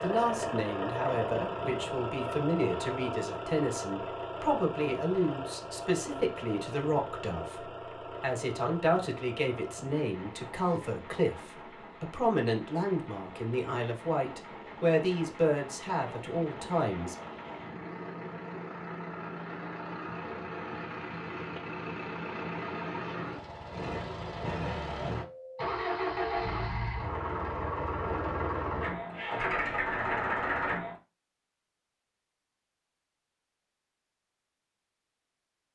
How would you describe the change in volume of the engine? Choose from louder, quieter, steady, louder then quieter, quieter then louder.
quieter then louder.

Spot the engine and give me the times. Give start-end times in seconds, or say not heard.
0.0-31.0.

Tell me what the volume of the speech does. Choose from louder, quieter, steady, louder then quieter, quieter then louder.
steady.